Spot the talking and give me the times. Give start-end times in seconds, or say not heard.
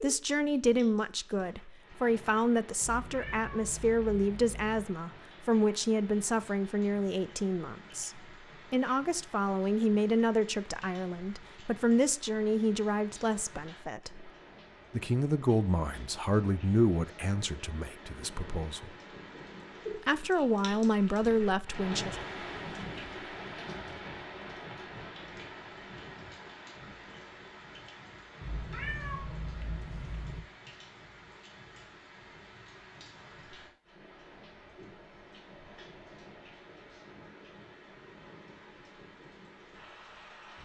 0.0-14.3, 14.9-18.9, 20.1-22.1.